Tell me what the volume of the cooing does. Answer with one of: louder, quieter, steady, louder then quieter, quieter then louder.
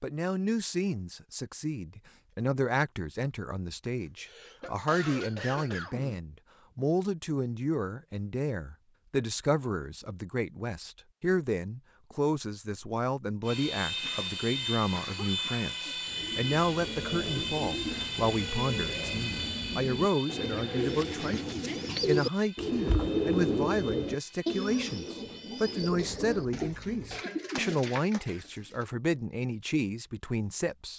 louder then quieter.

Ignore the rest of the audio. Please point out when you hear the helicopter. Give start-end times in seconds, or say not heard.
13.4-27.2.